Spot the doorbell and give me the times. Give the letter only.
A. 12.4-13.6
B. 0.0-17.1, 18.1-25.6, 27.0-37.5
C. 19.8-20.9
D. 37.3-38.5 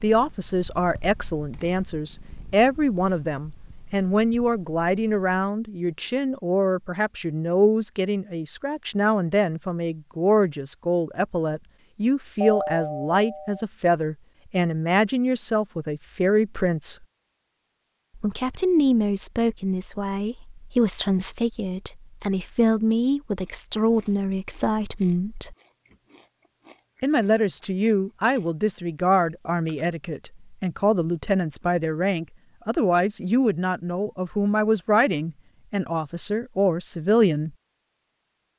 A.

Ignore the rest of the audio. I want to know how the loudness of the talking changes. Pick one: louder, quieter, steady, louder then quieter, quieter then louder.
steady.